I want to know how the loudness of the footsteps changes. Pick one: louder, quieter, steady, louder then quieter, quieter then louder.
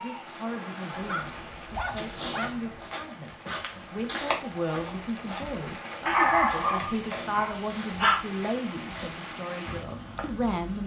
quieter.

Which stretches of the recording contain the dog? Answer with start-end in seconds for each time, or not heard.
0.9-2.6, 6.0-8.2.